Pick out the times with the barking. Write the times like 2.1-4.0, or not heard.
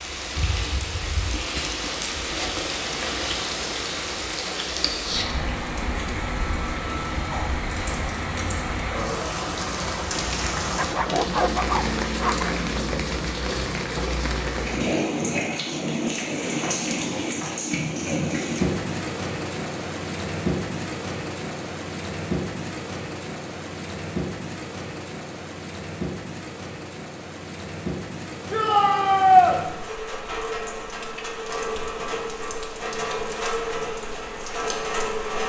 10.8-12.6.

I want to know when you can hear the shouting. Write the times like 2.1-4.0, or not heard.
28.5-29.6.